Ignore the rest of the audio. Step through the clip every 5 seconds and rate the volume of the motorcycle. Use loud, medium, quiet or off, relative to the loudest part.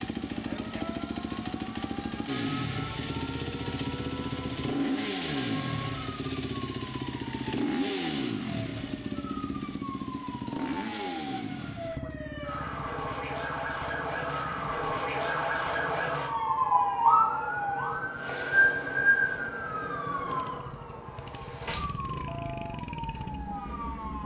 loud, loud, medium, quiet, medium.